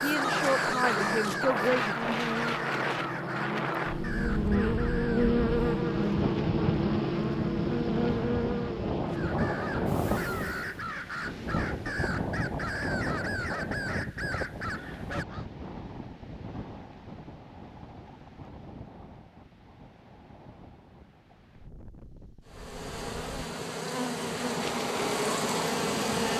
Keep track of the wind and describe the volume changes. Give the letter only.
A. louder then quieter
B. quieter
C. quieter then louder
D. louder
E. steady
B.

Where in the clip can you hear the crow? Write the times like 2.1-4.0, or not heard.
0.0-5.4, 9.1-15.4.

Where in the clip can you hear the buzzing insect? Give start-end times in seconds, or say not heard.
0.0-10.8, 22.4-26.3.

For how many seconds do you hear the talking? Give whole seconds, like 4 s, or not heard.
2 s.